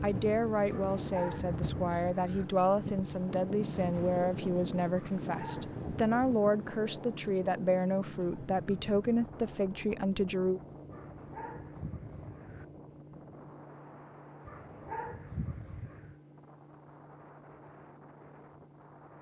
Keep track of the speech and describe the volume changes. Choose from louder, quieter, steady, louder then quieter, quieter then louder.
steady.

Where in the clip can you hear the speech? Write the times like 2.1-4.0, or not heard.
0.0-10.6.